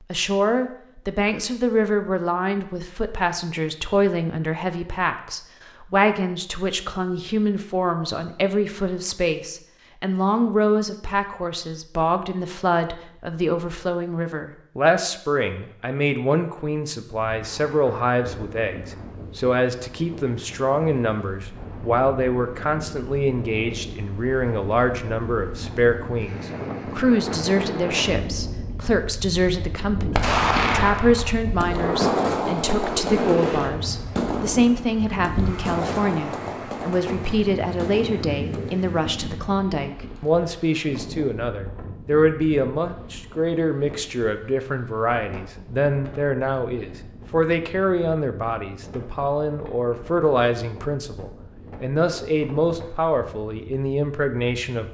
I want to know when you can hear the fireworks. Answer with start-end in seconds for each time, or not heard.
30.1-38.8.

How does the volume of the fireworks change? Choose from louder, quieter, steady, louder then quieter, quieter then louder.
quieter.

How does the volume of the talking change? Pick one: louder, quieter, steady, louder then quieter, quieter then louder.
steady.